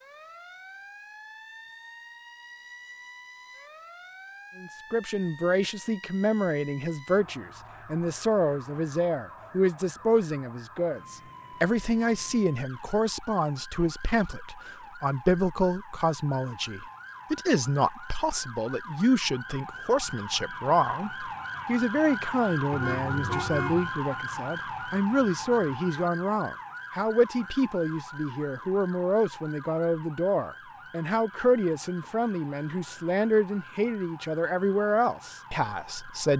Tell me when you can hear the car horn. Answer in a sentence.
The car horn can be heard from 22.7 to 23.9 s.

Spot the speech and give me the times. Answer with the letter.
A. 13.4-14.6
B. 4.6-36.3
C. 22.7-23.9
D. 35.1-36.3
B.